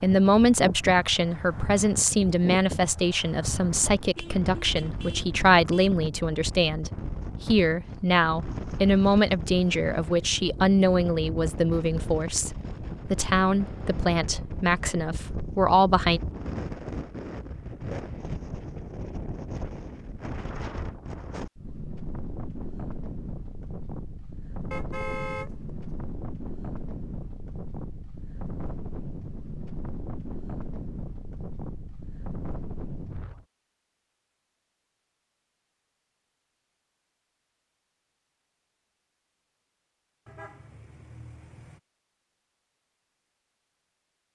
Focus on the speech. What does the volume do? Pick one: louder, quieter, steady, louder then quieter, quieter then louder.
steady.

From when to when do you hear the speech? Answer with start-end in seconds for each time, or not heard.
0.0-16.2.